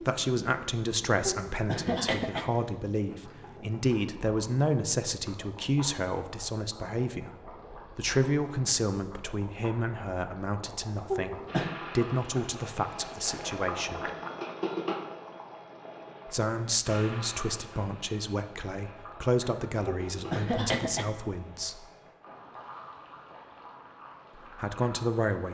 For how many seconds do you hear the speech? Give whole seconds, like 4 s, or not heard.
19 s.